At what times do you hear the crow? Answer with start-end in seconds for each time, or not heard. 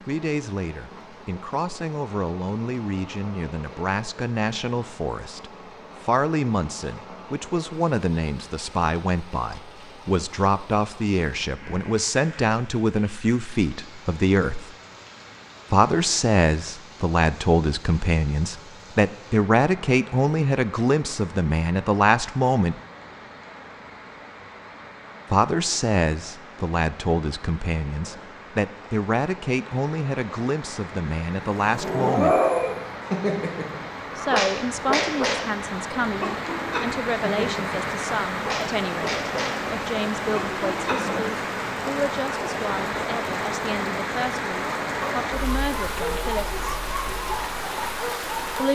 not heard.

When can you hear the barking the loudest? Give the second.
32 s.